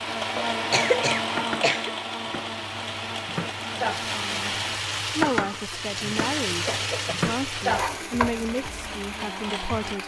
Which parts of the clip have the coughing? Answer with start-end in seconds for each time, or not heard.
0.3-1.9, 5.8-7.2.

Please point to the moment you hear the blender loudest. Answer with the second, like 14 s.
1 s.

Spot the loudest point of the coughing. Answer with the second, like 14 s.
1 s.